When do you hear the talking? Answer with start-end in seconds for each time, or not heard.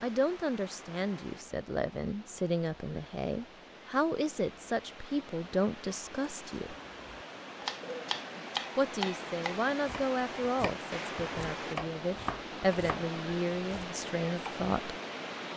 0.0-6.8, 8.8-14.9.